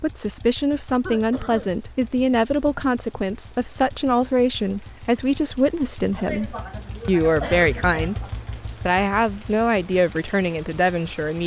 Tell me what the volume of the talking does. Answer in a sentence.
The loudness of the talking stays about the same.